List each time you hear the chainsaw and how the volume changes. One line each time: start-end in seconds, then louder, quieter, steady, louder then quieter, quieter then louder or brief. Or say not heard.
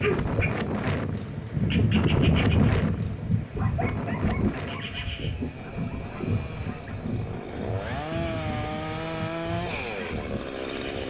0.0-11.0 louder.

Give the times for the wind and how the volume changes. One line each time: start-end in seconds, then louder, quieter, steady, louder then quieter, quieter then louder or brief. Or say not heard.
0.0-10.9 quieter.